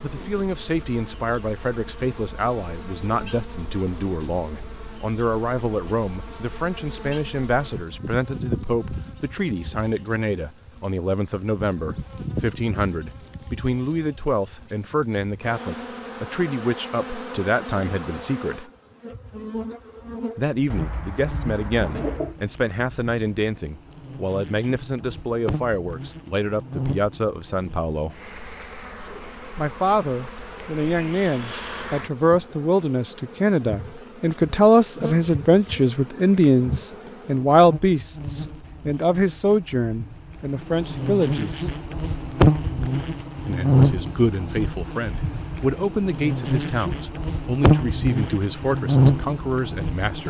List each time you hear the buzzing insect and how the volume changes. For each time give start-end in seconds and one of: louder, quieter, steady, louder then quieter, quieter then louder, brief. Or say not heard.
0.0-50.2 louder.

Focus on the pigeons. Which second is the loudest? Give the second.
22 s.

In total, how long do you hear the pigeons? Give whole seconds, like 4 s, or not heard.
2 s.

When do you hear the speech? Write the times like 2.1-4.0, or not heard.
0.0-18.6, 20.4-28.1, 29.6-41.7, 43.5-50.2.